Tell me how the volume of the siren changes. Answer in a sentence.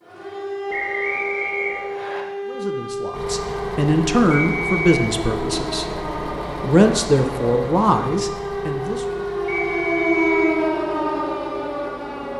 The loudness of the siren goes up.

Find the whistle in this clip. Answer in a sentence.
You can hear the whistle from 0.7 to 2.2 s, from 4.3 to 4.9 s and from 9.4 to 10.6 s.